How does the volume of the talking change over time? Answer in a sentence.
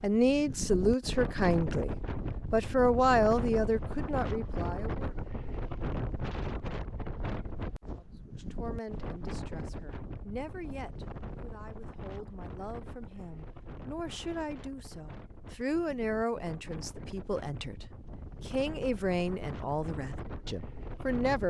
The loudness of the talking goes down, then up.